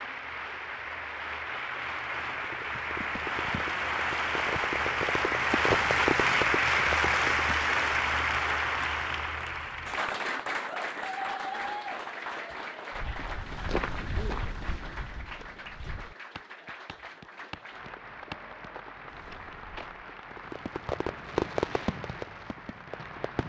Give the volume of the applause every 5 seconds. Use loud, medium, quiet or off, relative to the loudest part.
medium, loud, medium, quiet, quiet.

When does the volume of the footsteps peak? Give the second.
14 s.